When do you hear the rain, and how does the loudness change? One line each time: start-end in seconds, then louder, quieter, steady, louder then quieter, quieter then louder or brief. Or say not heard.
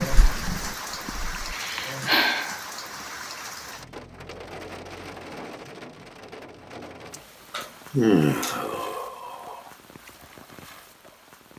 0.0-11.5 quieter.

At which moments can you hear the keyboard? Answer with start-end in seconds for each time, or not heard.
0.0-1.6.